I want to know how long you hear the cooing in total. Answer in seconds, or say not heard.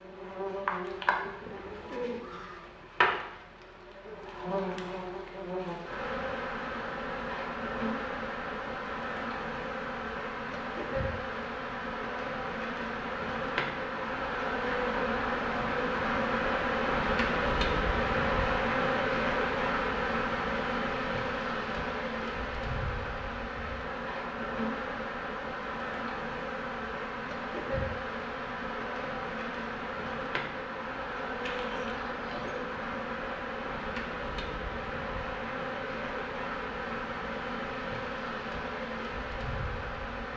3 s.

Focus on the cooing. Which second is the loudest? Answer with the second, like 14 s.
2 s.